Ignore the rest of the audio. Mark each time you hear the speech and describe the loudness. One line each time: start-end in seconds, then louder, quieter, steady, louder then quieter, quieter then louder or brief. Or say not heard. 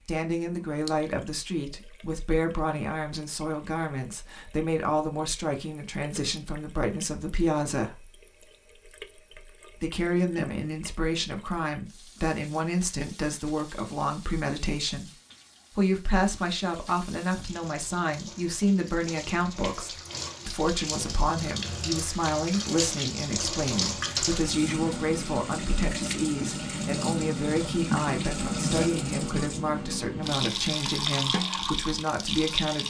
0.1-8.1 steady
9.8-15.2 steady
15.8-32.8 steady.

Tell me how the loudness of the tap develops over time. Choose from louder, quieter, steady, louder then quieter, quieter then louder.
louder.